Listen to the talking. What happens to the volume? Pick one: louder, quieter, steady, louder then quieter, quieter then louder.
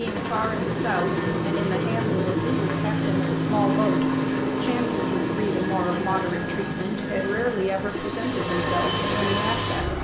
steady.